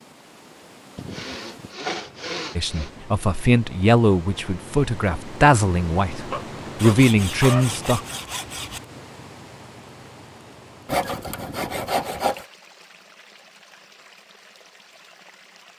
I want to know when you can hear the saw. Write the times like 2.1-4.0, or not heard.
0.9-2.9, 6.8-8.8, 10.8-12.4.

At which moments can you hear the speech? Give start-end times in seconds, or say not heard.
2.5-8.0.